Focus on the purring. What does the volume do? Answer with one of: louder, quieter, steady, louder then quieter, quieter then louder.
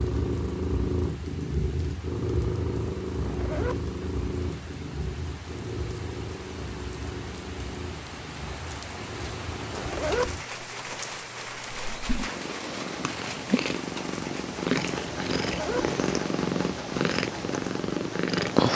quieter then louder.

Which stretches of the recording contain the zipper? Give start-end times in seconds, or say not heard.
3.2-3.8, 9.7-10.3, 15.4-15.8.